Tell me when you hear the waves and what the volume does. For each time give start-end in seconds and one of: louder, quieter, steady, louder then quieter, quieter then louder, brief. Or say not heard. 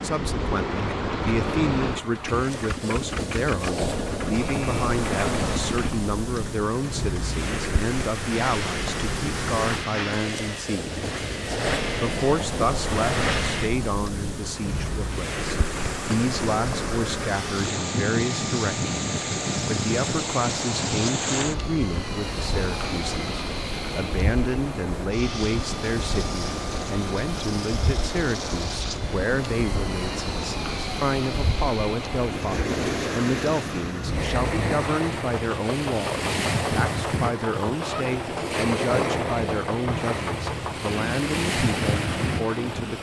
0.0-42.9 steady.